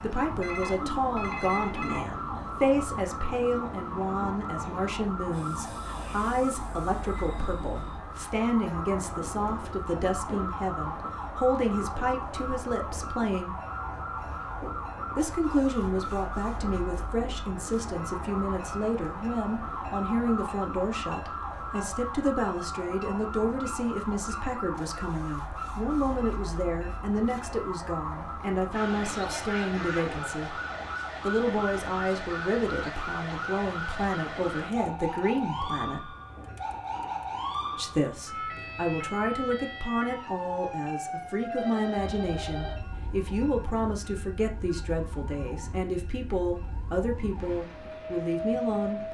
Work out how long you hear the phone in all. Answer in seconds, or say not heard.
3 s.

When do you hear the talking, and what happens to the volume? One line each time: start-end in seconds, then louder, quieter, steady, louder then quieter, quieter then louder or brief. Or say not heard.
0.0-13.6 steady
15.2-30.6 steady
31.2-36.1 steady
37.8-49.0 steady.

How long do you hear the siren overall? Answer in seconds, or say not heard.
49 s.